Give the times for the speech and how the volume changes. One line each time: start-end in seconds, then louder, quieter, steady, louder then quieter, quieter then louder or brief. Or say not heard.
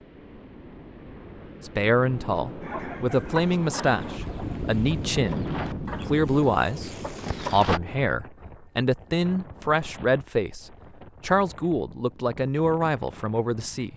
1.6-13.9 steady.